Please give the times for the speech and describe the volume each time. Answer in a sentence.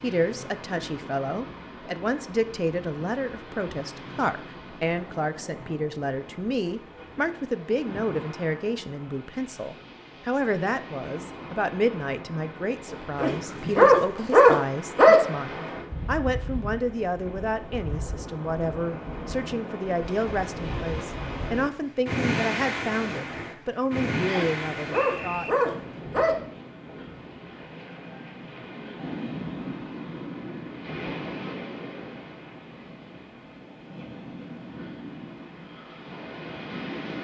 You can hear the speech from 0.0 to 25.5 s, at a steady volume.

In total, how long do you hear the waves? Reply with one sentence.
You can hear the waves for 37 seconds altogether.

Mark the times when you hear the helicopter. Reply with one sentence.
You can't hear the helicopter here.